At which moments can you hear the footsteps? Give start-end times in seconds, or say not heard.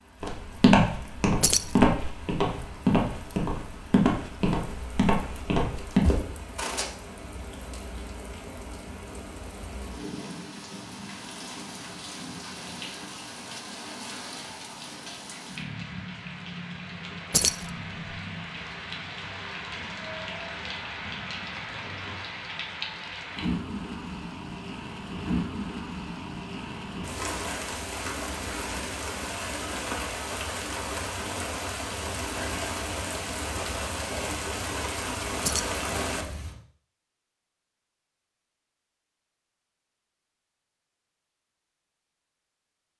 0.2-6.8.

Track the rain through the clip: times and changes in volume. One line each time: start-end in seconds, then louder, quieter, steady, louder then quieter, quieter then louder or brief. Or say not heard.
0.0-36.5 louder.